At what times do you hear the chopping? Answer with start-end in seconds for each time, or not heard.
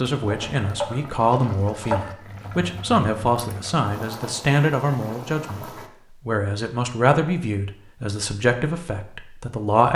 0.2-2.1.